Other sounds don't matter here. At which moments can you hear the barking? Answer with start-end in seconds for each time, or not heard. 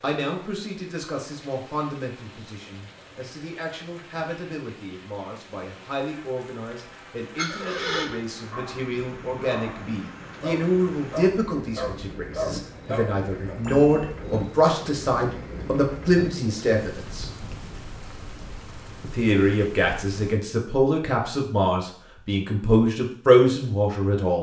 7.5-14.1.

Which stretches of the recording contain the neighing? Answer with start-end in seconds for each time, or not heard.
7.3-8.1.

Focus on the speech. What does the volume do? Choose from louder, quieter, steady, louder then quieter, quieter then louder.
louder.